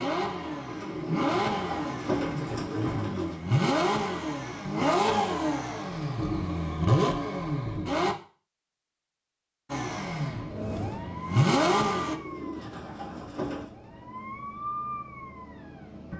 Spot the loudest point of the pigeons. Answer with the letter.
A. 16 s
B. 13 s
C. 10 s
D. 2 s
D.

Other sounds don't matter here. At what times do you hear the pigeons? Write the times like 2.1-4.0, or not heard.
0.7-3.4, 12.0-13.7.